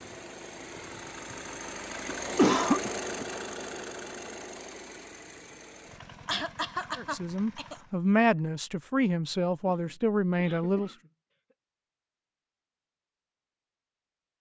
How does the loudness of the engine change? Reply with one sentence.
The loudness of the engine goes up, then down.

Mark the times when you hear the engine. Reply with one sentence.
You can hear the engine from 0.0 to 8.0 s.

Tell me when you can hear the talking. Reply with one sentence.
You can hear the talking from 7.0 to 10.9 s.